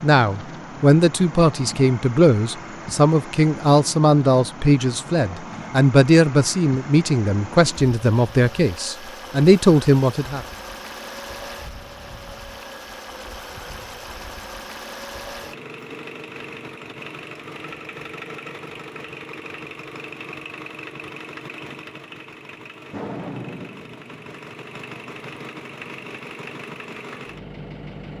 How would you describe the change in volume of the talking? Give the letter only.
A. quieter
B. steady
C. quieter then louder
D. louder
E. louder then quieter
B.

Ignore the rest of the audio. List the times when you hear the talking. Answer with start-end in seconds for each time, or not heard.
0.0-10.4.